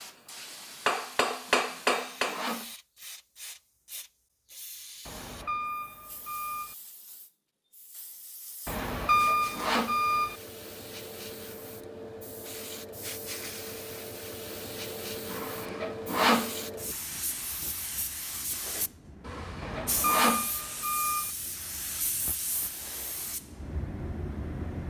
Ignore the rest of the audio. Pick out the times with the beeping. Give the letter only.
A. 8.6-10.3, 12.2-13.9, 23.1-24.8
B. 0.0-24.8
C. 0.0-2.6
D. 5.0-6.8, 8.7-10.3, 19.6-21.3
D.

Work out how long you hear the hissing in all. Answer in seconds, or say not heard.
25 s.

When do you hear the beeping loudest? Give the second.
9 s.